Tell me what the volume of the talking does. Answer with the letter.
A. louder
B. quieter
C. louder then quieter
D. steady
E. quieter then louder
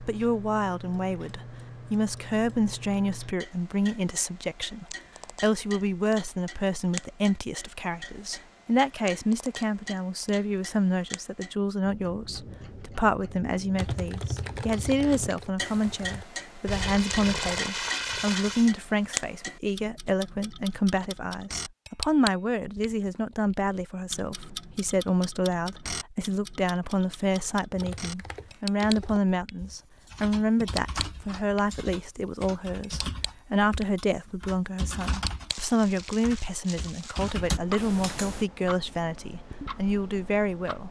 D.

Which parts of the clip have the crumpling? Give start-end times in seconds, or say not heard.
16.6-18.7, 35.5-37.4.